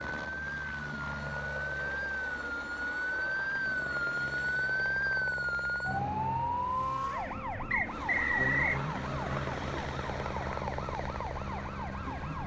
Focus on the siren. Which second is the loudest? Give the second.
5 s.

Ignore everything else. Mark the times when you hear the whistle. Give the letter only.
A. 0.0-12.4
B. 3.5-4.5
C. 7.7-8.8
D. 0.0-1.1
C.